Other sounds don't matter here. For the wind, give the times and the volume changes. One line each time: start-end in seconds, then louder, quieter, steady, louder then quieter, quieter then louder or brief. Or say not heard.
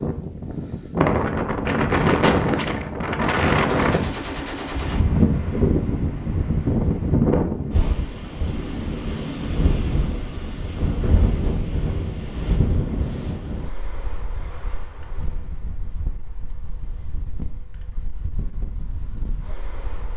0.0-20.1 quieter.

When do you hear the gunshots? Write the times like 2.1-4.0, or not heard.
3.4-5.0.